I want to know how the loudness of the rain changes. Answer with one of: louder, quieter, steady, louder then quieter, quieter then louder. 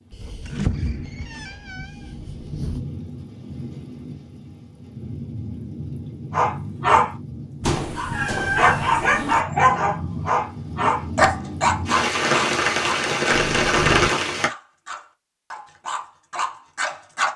louder.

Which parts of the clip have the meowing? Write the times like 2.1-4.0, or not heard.
0.1-2.9, 7.6-9.4, 13.3-14.2.